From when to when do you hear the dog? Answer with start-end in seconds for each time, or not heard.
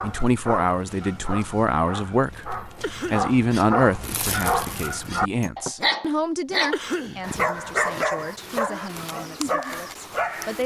0.0-10.6.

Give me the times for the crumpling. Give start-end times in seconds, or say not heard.
4.0-5.7.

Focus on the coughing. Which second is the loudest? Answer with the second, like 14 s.
7 s.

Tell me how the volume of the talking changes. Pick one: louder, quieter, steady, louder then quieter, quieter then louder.
quieter.